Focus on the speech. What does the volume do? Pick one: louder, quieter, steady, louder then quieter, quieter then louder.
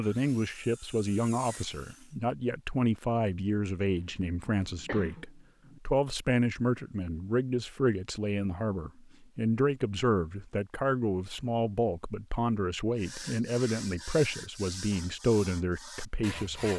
steady.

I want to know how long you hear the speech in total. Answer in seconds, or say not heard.
17 s.